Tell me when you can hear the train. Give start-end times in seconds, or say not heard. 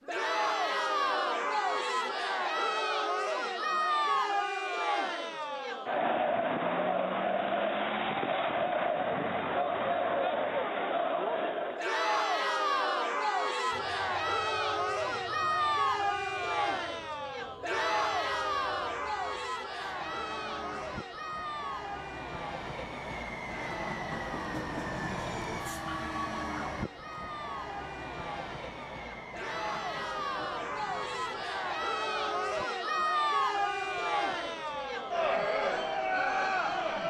13.7-37.0.